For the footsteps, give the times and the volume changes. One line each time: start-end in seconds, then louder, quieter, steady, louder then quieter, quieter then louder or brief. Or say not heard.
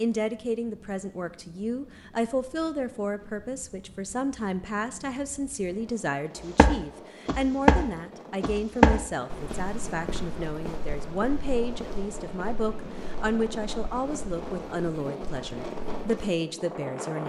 6.5-16.1 quieter.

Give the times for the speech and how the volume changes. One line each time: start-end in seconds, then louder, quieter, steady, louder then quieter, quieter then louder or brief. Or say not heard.
0.0-17.2 steady.